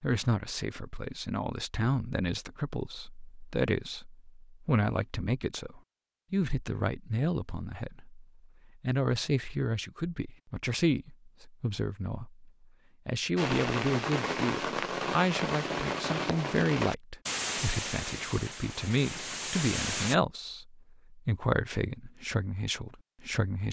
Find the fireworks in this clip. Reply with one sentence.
You can hear the fireworks from 13.3 to 20.1 s.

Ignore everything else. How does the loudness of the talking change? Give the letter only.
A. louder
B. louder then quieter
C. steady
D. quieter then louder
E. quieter
C.